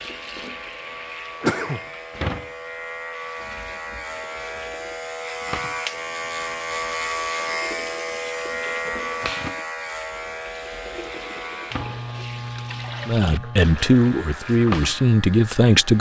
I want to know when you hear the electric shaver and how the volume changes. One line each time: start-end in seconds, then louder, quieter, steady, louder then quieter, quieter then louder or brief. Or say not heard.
0.0-15.9 louder then quieter.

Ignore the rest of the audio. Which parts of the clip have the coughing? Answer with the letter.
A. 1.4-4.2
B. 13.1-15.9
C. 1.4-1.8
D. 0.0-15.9
C.